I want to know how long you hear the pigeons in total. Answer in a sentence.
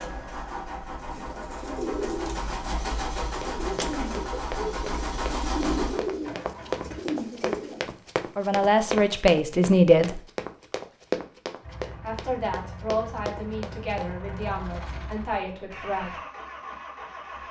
You can hear the pigeons for 7 seconds altogether.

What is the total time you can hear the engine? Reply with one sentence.
You can hear the engine for 13 seconds altogether.